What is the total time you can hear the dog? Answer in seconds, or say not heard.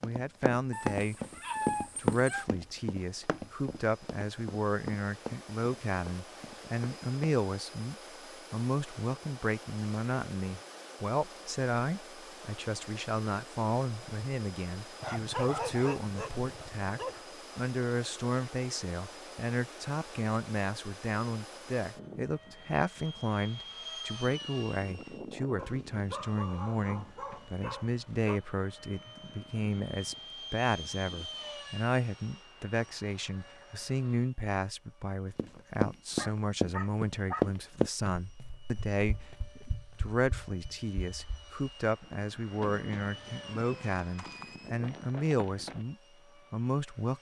8 s.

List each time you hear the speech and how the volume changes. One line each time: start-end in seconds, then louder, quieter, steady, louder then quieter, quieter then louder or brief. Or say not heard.
0.0-47.1 steady.